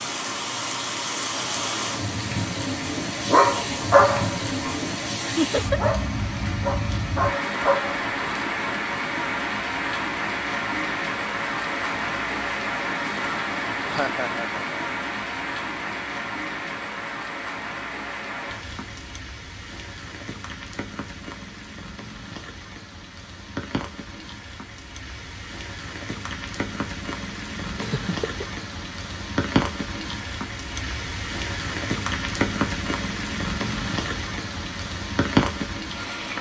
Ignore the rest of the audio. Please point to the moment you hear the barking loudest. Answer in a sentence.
The volume of the barking peaks at 4 seconds.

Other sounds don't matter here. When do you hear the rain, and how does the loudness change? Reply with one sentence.
You can hear the rain from 0.0 to 36.3 s, getting quieter then louder.